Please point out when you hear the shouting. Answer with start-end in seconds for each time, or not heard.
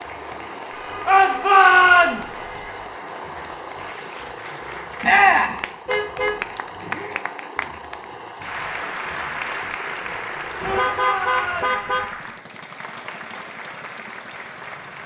1.1-2.5, 5.0-5.5, 10.6-11.8.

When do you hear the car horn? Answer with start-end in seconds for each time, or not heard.
0.7-2.8, 5.8-7.2, 10.6-12.1.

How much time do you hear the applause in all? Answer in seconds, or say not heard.
15 s.